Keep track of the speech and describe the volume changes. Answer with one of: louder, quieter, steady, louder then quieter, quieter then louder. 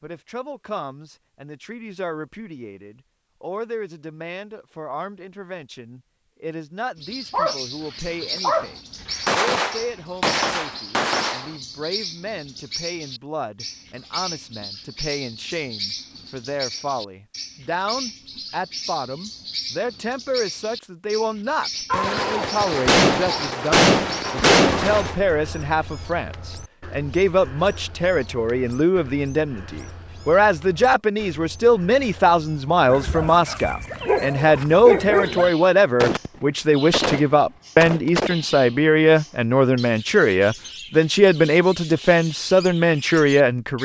louder.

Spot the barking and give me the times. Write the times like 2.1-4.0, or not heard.
7.3-9.3, 32.9-35.5.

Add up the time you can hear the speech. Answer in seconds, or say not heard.
44 s.